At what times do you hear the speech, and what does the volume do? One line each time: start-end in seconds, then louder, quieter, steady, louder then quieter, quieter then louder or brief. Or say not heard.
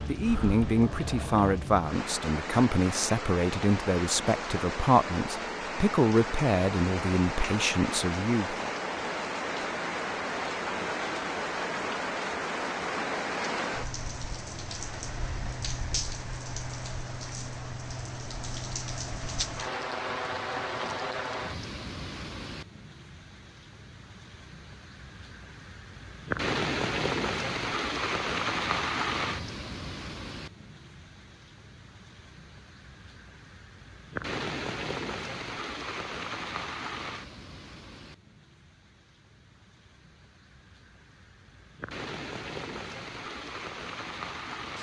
0.1-8.6 steady.